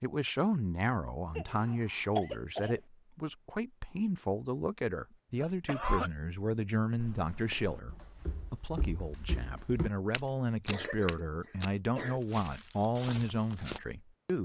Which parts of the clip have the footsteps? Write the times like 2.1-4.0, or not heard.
7.0-13.8.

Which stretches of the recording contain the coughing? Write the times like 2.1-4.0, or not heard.
1.4-2.8, 5.4-6.1, 10.7-12.2.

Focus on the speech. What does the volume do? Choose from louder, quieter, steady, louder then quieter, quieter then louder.
steady.